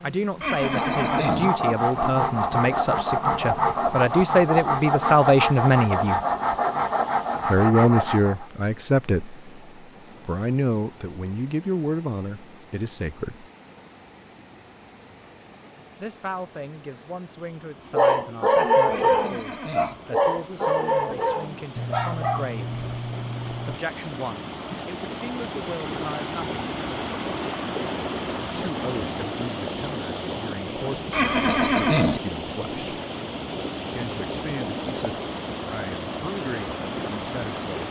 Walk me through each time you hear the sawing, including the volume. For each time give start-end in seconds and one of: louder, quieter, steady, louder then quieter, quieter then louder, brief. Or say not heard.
0.5-8.4 steady.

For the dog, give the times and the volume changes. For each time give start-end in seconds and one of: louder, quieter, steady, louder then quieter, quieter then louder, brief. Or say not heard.
17.9-23.8 quieter.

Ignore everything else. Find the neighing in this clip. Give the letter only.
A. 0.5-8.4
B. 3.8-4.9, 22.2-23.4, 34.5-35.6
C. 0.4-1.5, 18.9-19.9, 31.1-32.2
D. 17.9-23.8
C.